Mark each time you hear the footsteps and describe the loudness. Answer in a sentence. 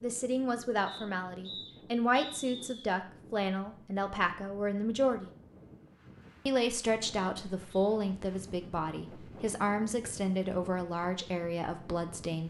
The footsteps can't be heard in this clip.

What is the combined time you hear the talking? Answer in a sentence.
You can hear the talking for 11 seconds altogether.